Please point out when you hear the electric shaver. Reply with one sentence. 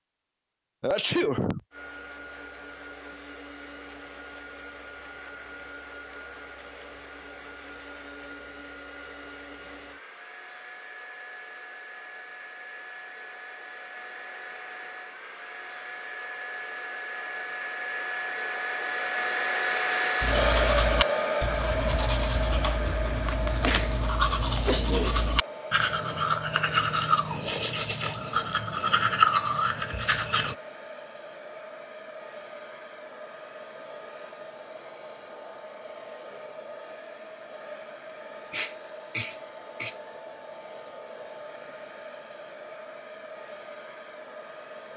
The electric shaver can't be heard in this clip.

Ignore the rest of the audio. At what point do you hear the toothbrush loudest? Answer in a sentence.
The volume of the toothbrush peaks at 29 seconds.